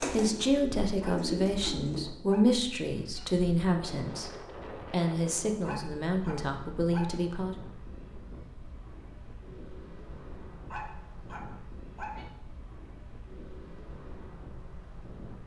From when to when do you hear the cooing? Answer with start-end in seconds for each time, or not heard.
0.0-2.1.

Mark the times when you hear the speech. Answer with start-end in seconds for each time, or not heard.
0.0-4.3, 4.9-7.5.